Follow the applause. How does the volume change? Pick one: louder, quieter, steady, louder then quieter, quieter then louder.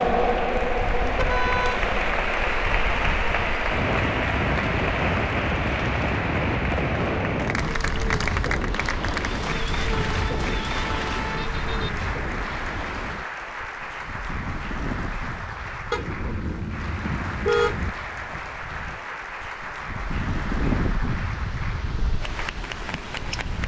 quieter.